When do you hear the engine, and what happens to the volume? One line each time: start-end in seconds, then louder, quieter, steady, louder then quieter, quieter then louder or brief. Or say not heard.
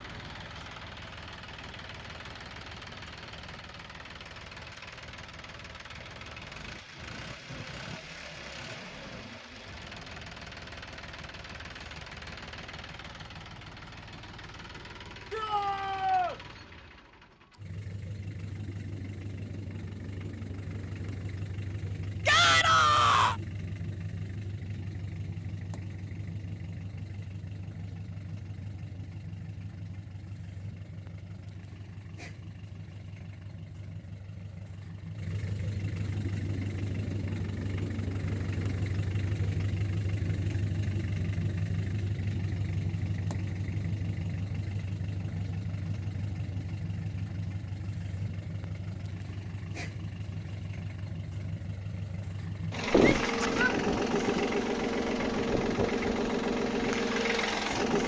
0.0-58.0 louder.